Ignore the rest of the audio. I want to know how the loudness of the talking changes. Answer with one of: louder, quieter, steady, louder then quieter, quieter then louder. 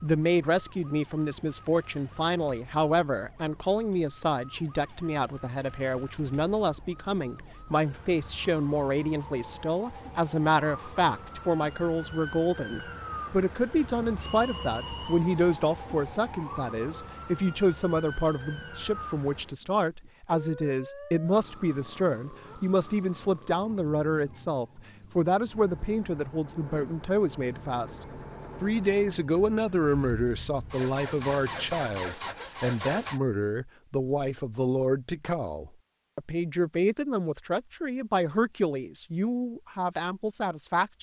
steady.